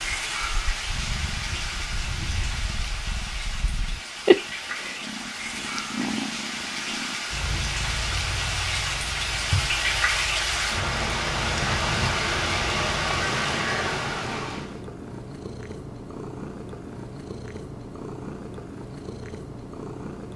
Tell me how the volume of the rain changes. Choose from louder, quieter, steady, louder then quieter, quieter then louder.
louder.